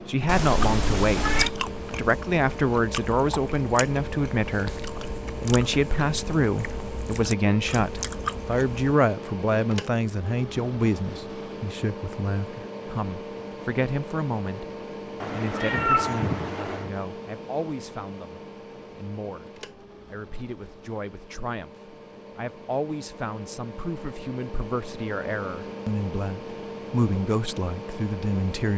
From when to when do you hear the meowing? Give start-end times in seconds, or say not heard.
0.2-1.5, 15.2-16.9.